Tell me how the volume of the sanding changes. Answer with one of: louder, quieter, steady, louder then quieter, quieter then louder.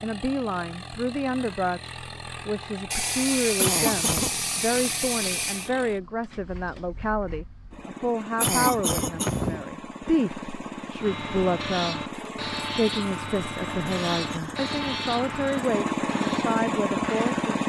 quieter.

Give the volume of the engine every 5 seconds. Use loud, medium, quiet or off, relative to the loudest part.
quiet, quiet, medium, loud.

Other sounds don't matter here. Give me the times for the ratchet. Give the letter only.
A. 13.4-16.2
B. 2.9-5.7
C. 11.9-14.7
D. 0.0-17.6
B.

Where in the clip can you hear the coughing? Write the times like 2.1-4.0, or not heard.
3.5-4.3, 8.4-9.7, 13.8-15.0.